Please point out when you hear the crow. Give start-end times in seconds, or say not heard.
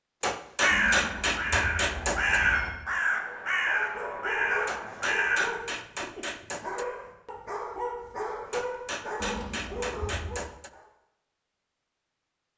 0.6-5.5.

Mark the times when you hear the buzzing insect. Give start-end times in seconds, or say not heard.
not heard.